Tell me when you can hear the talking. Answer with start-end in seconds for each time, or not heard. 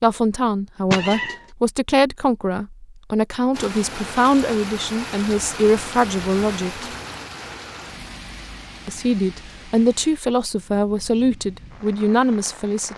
0.0-6.8, 8.8-12.9.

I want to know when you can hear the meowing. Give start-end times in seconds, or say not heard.
0.9-1.4.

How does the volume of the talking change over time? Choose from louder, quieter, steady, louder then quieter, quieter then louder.
steady.